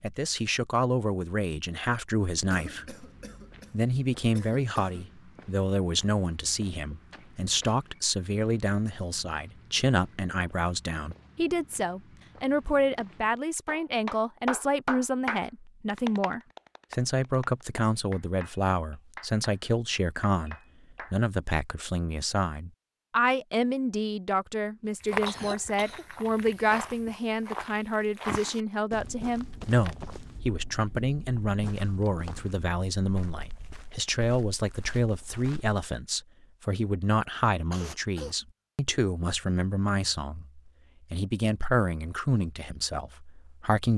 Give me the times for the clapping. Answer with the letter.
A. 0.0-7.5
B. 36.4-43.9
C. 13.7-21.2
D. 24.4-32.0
C.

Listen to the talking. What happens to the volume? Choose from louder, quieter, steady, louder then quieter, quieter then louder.
steady.